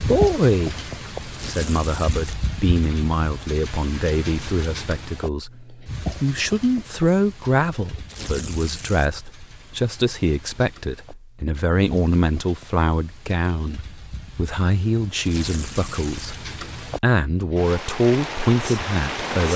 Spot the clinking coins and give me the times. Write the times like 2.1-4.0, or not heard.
not heard.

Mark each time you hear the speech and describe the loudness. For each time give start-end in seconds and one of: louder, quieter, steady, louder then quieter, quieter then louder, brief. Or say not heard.
0.0-19.5 steady.